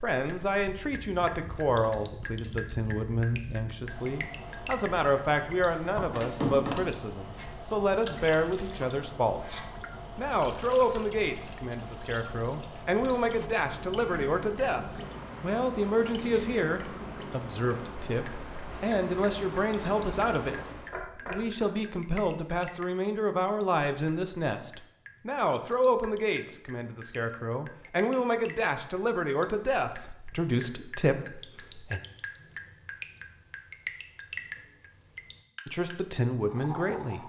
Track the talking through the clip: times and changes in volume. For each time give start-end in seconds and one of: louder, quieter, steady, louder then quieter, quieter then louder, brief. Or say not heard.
0.0-32.0 steady
35.6-37.2 brief.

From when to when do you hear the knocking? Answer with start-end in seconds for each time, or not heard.
6.0-6.8, 20.9-21.6.